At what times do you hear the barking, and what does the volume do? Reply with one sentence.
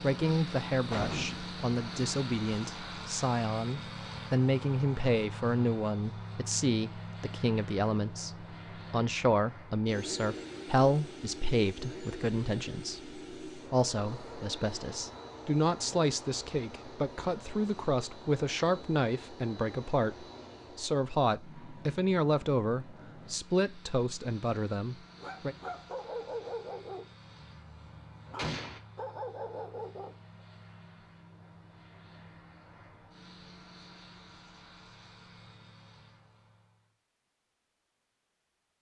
You can hear the barking from 25.1 to 30.1 s, getting quieter then louder.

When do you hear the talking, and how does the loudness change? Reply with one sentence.
The talking can be heard from 0.0 to 25.6 s, at a steady volume.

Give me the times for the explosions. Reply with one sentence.
You can hear the explosions from 0.9 to 1.4 s and from 28.4 to 28.8 s.